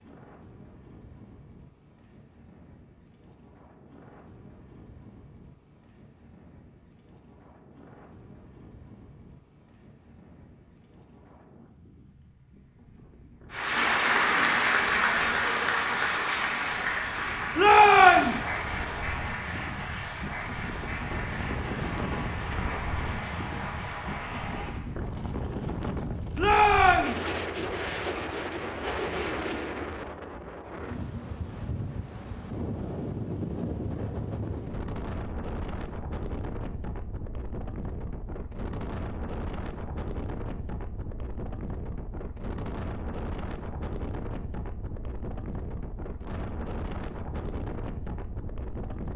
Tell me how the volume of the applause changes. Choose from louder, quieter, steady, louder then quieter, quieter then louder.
quieter.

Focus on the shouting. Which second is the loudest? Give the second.
18 s.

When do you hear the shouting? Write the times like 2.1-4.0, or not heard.
17.6-18.4, 26.4-27.2.